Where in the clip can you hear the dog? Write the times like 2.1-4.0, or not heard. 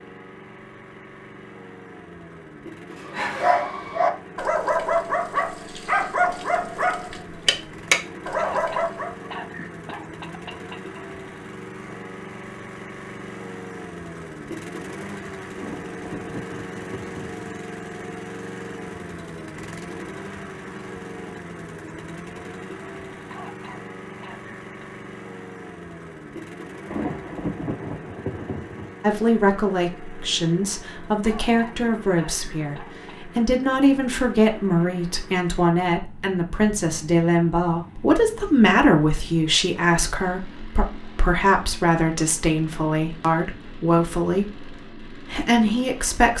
3.0-9.3.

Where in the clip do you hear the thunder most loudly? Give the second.
28 s.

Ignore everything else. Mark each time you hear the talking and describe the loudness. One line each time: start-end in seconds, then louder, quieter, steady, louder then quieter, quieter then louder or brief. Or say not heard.
29.0-44.7 steady
45.3-46.3 brief.